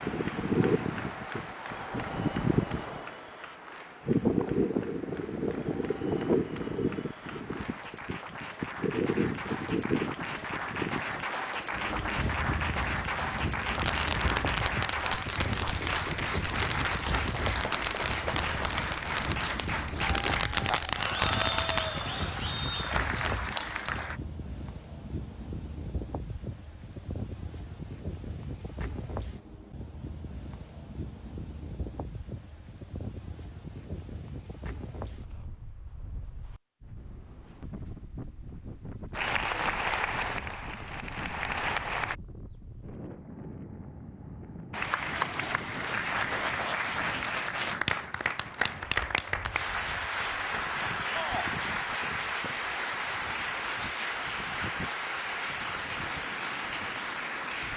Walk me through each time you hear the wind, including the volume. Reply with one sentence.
The wind can be heard from 0.0 to 57.7 s, getting quieter.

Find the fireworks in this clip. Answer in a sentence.
You can hear the fireworks from 13.6 to 21.9 s.